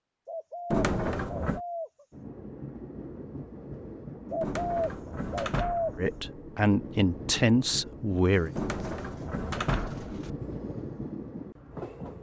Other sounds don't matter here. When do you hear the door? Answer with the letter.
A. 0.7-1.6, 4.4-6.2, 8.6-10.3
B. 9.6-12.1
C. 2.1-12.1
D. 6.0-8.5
A.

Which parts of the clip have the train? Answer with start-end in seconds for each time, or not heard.
2.1-12.1.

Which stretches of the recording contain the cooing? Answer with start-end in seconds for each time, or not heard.
0.2-2.0, 4.3-6.1, 8.3-10.3.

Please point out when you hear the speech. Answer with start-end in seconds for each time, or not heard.
6.0-8.5.